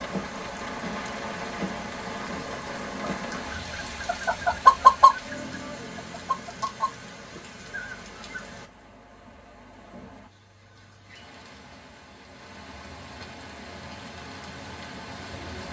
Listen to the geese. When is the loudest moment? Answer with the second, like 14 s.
5 s.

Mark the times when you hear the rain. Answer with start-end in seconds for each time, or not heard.
0.0-15.6.